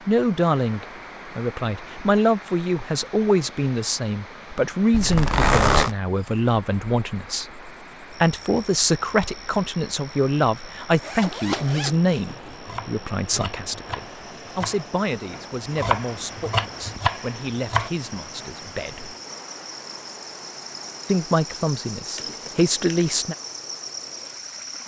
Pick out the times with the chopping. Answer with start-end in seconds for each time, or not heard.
12.5-17.9.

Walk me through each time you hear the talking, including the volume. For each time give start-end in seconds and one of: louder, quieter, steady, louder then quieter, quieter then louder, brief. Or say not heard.
0.1-19.1 quieter
21.1-23.4 brief.